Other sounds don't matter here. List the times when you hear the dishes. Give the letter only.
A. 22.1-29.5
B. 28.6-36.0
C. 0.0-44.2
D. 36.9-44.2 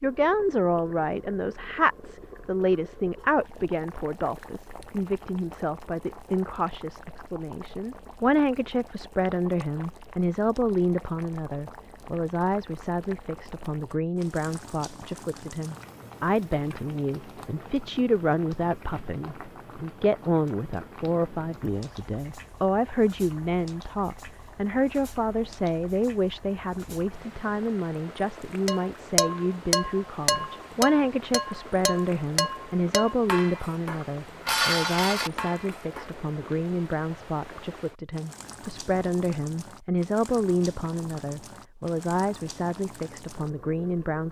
B.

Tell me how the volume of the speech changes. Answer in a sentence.
The loudness of the speech stays about the same.